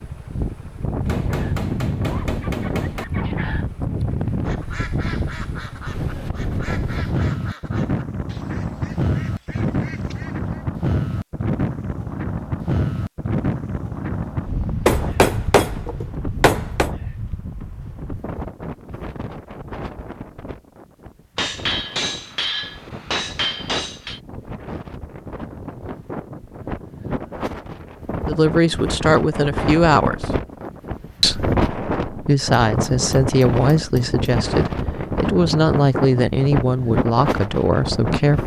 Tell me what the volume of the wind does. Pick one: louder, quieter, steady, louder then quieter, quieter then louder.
quieter then louder.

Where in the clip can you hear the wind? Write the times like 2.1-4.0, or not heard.
0.0-38.4.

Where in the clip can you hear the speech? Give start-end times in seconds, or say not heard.
28.2-30.4, 31.2-38.4.